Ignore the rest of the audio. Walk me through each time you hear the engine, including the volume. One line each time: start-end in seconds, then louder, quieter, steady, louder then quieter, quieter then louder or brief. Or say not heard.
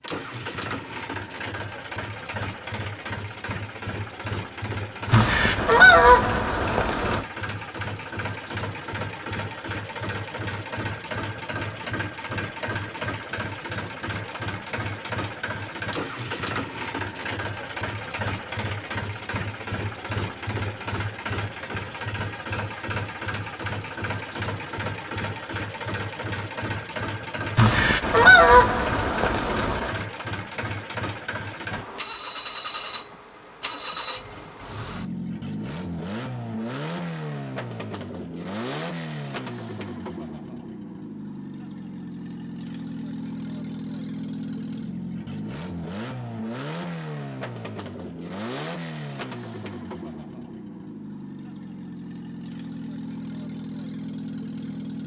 0.0-55.0 steady.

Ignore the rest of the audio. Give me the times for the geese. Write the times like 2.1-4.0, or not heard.
5.1-7.2, 27.6-30.0.